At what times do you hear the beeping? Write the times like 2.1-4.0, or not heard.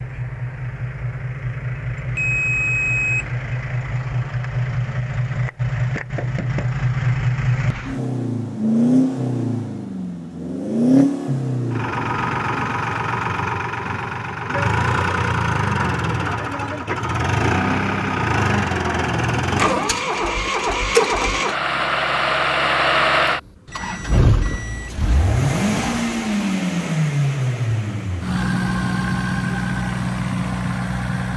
2.1-3.3, 11.7-12.8, 23.6-25.1.